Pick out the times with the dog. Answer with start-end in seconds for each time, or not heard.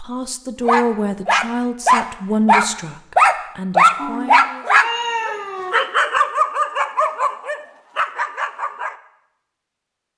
0.6-8.9.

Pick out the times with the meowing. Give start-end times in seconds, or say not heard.
4.0-5.8.